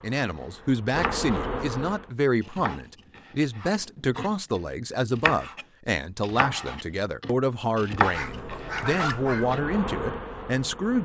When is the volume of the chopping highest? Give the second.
8 s.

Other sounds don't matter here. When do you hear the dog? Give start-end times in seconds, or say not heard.
8.1-9.6.